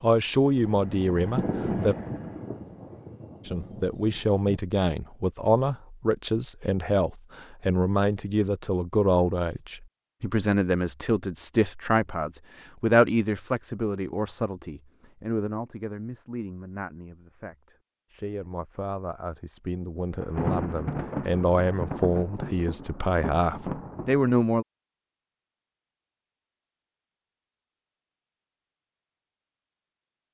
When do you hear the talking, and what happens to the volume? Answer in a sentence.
The talking can be heard briefly from 0.0 to 1.9 s; and from 3.5 to 24.6 s, getting quieter then louder.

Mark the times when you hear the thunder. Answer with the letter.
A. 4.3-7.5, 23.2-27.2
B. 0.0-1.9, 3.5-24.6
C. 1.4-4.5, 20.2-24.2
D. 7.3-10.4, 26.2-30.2
C.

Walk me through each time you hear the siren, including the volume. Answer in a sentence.
You can't hear the siren here.